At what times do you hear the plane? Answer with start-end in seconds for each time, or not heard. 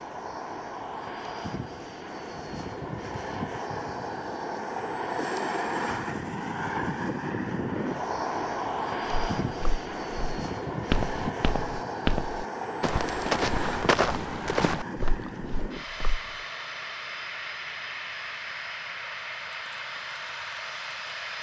0.0-21.3.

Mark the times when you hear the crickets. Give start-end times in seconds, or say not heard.
not heard.